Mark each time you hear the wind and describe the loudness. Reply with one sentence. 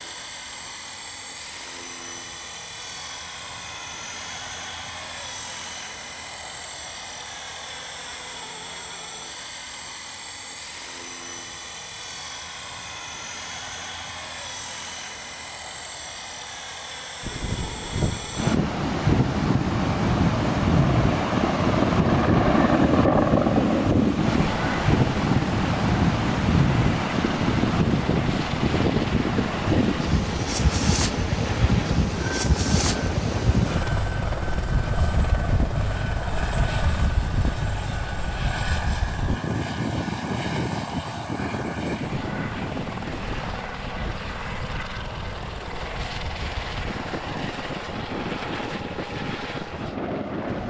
The wind can be heard from 17.2 to 50.6 s, getting quieter.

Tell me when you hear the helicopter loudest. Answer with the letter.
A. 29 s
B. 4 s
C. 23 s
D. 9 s
C.